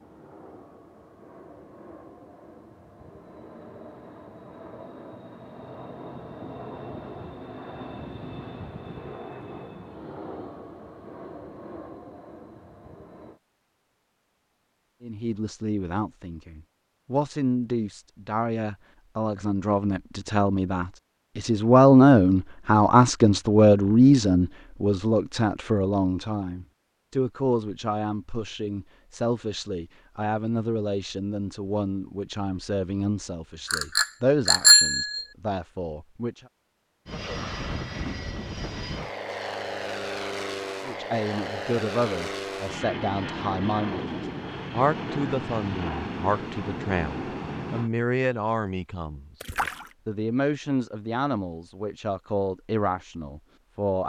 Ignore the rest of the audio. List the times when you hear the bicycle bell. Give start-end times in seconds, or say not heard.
33.7-35.2.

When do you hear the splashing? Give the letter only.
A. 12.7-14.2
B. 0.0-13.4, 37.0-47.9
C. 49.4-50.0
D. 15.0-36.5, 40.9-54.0
C.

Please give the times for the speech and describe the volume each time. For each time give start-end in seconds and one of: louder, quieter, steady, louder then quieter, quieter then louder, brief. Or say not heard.
15.0-36.5 louder then quieter
40.9-54.0 steady.